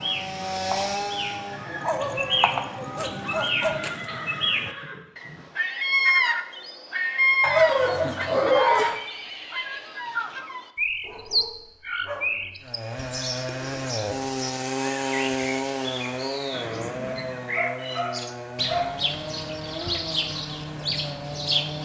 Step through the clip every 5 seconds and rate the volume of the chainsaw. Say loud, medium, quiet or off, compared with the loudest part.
loud, off, loud, loud, medium.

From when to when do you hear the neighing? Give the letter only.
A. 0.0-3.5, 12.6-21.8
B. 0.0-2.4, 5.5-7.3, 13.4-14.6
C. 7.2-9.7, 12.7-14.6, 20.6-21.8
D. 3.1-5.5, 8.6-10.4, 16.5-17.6
D.